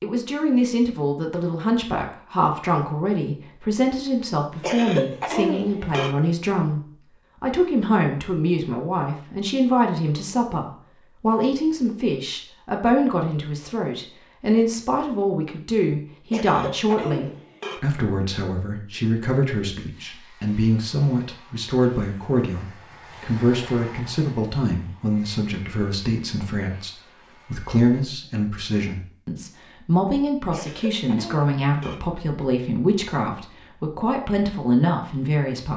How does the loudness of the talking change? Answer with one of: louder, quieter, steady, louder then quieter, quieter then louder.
steady.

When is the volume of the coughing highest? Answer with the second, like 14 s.
5 s.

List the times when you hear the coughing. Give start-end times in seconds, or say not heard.
4.6-6.2, 16.3-17.8, 30.5-32.0.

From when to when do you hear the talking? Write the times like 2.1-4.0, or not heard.
0.0-35.7.